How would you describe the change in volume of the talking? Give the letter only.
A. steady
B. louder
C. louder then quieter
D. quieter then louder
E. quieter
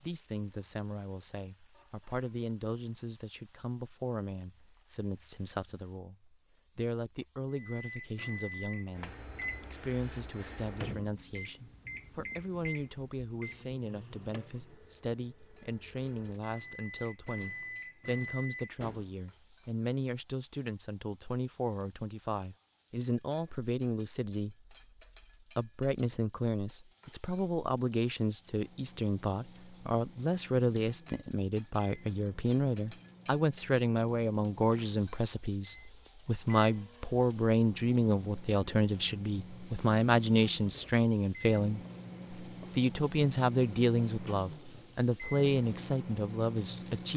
B.